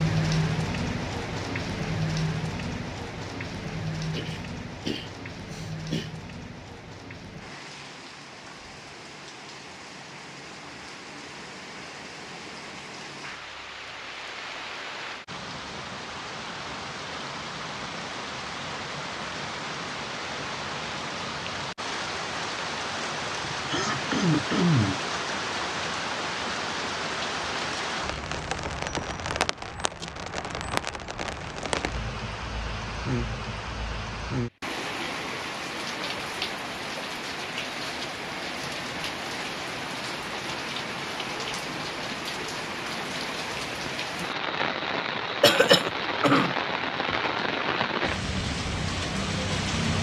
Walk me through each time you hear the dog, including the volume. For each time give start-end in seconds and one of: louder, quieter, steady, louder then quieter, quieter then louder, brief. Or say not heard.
not heard.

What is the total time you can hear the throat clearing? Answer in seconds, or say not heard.
5 s.